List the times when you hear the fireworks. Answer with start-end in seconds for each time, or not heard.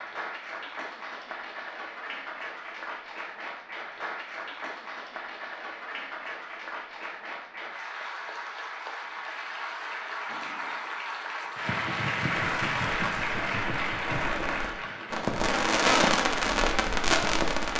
12.3-17.7.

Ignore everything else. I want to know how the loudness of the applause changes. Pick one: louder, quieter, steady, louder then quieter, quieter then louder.
louder.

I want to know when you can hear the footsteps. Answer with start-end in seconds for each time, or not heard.
not heard.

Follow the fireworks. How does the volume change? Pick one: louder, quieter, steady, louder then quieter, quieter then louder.
louder.